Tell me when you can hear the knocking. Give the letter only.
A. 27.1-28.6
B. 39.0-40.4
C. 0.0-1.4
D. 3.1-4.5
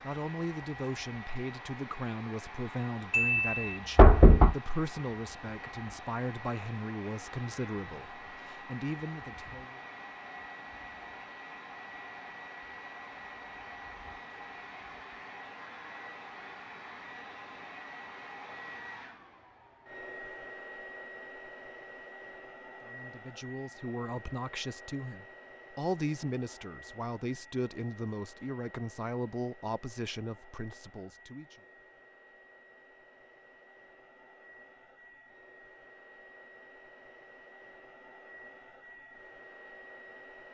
D.